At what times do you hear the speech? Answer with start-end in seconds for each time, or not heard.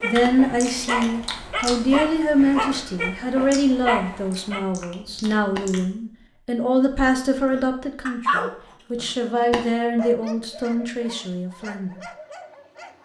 0.0-12.0.